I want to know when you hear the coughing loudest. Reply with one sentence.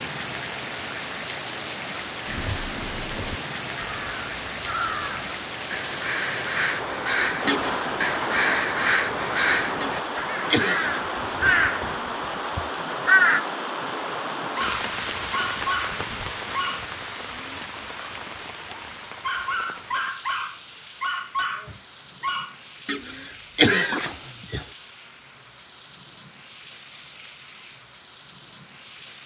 The loudest moment of the coughing is at 24 seconds.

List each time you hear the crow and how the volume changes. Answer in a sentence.
You can hear the crow from 2.2 to 13.4 s, getting louder.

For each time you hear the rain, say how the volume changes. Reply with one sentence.
The rain can be heard from 0.0 to 29.2 s, getting quieter.